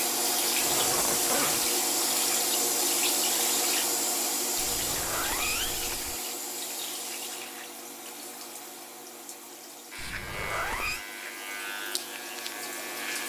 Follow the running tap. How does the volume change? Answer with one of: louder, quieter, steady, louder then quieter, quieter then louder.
quieter.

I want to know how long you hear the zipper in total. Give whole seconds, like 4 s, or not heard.
4 s.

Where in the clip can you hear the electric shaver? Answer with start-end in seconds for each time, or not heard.
9.9-13.2.